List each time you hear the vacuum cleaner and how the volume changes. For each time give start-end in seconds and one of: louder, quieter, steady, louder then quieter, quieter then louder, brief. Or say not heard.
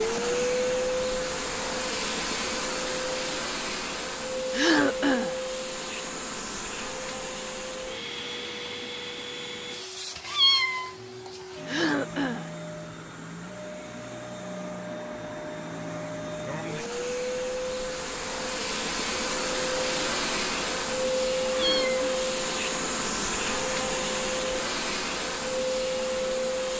0.0-26.7 quieter then louder.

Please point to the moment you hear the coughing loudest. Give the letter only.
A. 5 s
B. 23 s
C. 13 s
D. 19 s
A.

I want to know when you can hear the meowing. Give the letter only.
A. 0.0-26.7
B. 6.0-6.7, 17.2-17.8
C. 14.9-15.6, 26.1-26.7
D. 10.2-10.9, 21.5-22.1
D.